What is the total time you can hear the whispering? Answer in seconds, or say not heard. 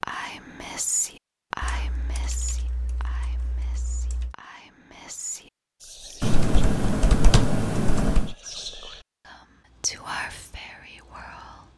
10 s.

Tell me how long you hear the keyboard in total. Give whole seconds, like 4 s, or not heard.
5 s.